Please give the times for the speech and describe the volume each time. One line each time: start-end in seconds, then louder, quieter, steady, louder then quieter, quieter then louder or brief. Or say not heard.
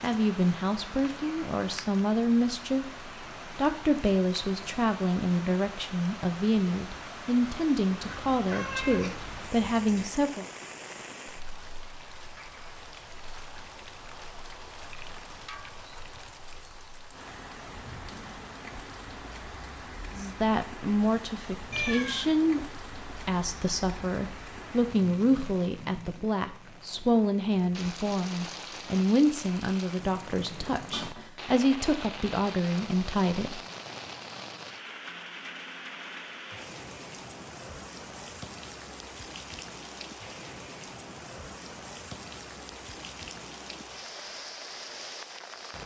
0.0-2.9 brief
3.5-10.4 steady
20.1-33.6 steady.